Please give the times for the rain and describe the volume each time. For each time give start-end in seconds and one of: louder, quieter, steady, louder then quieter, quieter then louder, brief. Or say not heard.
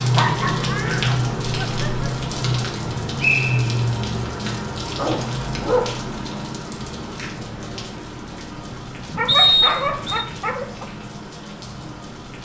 0.0-12.4 quieter.